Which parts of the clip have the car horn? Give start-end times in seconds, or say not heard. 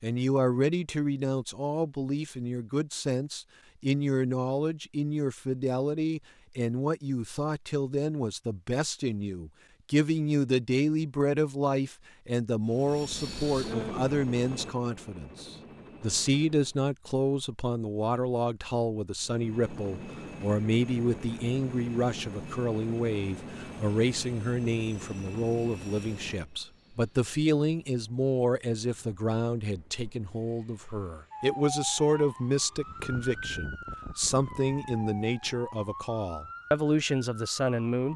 not heard.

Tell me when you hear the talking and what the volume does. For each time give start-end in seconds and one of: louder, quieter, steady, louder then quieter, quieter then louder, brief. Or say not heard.
0.0-38.1 steady.